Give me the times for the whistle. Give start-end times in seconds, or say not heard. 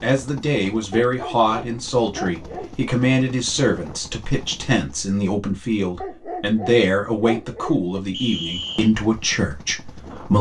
8.1-8.9.